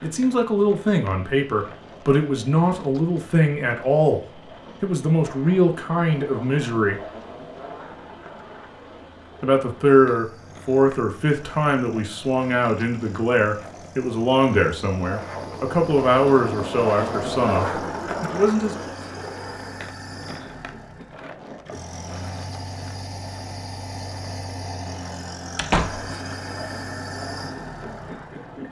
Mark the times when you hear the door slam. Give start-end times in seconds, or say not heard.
25.6-26.1.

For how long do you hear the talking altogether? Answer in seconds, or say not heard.
16 s.